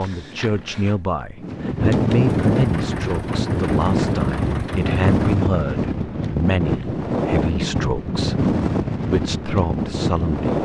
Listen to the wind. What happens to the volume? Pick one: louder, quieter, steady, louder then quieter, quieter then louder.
steady.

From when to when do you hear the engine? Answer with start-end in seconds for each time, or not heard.
2.2-5.3.